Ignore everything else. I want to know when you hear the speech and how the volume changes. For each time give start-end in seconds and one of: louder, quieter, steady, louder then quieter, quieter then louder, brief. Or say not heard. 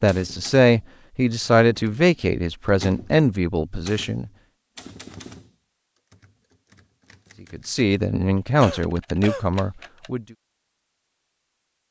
0.0-4.3 quieter
7.5-10.2 brief.